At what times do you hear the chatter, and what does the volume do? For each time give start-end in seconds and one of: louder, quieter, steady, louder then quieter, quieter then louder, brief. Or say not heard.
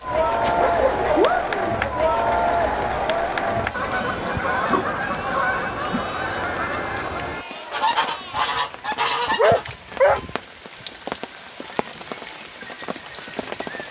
0.0-8.6 quieter.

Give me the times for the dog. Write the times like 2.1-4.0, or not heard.
0.4-1.9, 4.7-6.1, 9.3-10.2.